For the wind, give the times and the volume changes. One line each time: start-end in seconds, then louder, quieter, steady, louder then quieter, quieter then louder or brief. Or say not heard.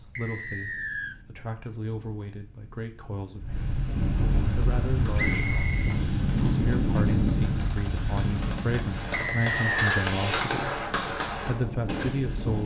0.0-12.6 louder then quieter.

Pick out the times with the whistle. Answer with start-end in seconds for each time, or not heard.
0.1-1.1, 5.2-6.7, 9.1-9.9.